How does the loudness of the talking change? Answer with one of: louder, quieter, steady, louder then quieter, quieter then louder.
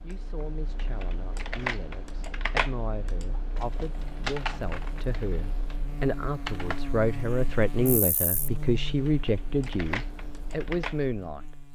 louder.